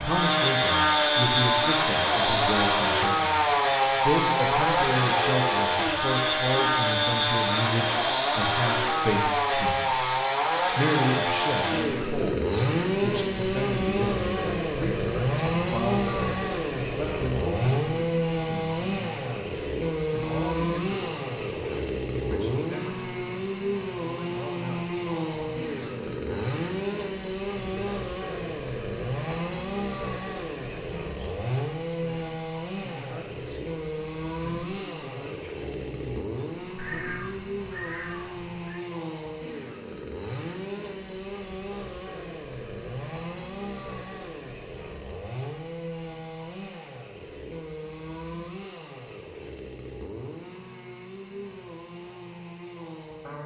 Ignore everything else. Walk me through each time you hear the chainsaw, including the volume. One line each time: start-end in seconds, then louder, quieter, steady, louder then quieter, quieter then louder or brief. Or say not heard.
0.0-53.4 quieter.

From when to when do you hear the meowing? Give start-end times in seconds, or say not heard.
36.8-38.9.